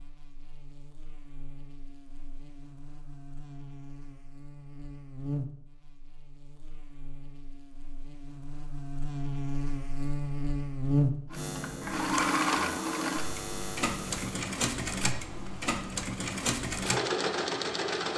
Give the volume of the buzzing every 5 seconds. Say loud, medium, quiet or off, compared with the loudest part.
quiet, medium, loud, off.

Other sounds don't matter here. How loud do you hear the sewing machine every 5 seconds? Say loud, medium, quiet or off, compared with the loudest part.
off, off, loud, loud.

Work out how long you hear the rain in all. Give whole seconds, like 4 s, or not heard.
not heard.